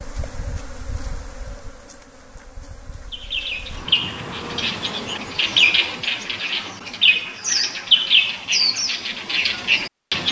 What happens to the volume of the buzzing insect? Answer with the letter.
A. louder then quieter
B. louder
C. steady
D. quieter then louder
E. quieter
D.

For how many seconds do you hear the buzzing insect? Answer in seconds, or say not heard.
5 s.